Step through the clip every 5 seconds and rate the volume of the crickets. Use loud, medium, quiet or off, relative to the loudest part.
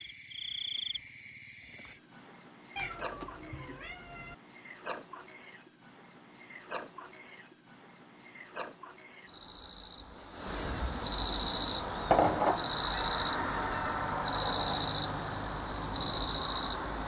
quiet, quiet, loud, loud.